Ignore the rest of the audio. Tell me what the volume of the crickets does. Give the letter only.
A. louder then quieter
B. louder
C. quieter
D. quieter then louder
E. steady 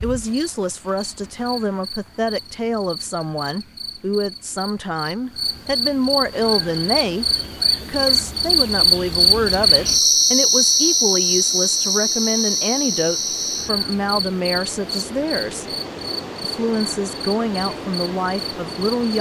A.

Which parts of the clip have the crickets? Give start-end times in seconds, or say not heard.
0.0-19.1.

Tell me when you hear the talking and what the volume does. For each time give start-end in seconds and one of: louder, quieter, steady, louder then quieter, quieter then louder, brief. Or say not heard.
0.0-15.7 steady
16.4-19.1 brief.